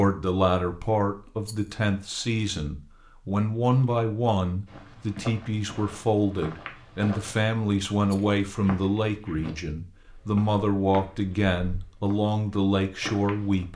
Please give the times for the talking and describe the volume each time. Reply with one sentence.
The talking can be heard from 0.0 to 13.7 s, at a steady volume.